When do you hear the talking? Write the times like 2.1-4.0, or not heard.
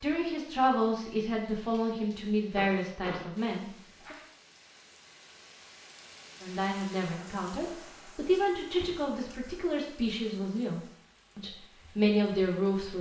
0.0-4.2, 6.4-12.9.